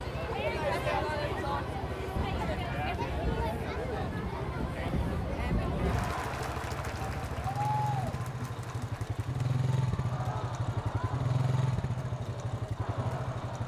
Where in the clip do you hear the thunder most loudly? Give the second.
6 s.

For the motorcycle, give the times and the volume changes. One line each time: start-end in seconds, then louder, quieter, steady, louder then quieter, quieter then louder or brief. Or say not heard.
0.0-13.6 louder.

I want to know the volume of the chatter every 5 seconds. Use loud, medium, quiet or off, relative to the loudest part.
loud, loud, medium.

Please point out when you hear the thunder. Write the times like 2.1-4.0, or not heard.
2.1-6.2.